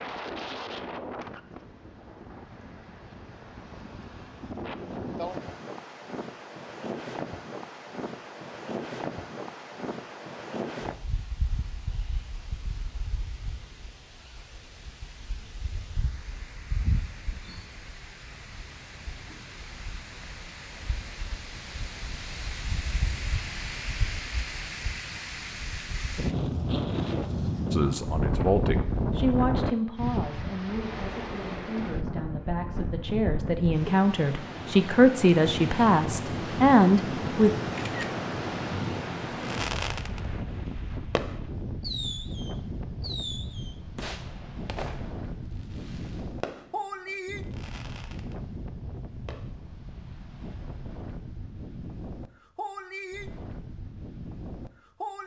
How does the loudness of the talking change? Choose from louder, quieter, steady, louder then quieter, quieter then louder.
quieter then louder.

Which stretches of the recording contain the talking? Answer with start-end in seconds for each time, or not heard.
27.7-37.5.